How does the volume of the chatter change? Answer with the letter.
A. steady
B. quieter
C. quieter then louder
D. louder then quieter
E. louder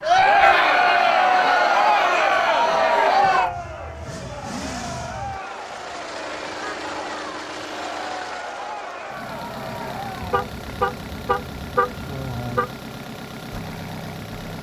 B.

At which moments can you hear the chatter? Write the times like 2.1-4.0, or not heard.
0.0-10.3.